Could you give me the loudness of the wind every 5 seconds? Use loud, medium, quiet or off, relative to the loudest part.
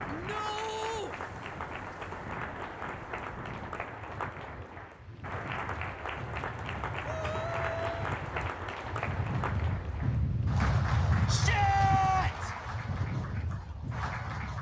quiet, medium, loud.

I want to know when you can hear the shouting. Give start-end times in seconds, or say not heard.
0.1-1.1, 7.0-8.2, 11.2-12.5.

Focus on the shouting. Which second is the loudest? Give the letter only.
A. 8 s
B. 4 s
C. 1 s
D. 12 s
D.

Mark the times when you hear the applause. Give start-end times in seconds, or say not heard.
0.0-14.5.